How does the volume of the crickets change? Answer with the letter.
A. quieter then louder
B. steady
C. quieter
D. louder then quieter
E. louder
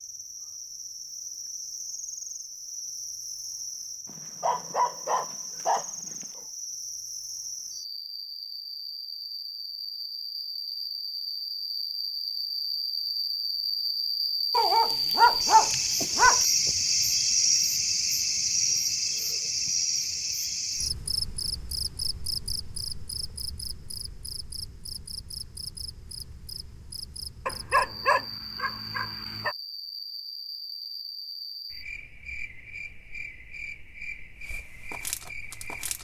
D.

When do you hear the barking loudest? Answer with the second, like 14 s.
15 s.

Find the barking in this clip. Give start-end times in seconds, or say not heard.
4.0-6.2, 14.5-16.4, 27.4-29.6.